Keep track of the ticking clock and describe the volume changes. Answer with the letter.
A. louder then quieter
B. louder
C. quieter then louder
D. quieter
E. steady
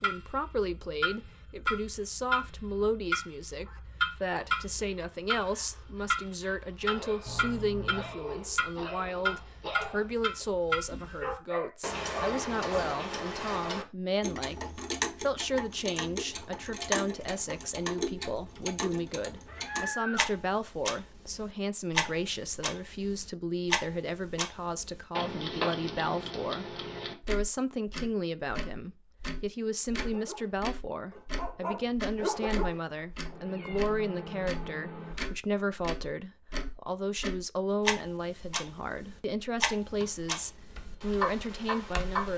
E.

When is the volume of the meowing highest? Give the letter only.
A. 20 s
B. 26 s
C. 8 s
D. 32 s
A.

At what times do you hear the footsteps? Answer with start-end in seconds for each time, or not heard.
not heard.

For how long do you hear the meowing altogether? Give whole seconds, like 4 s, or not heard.
4 s.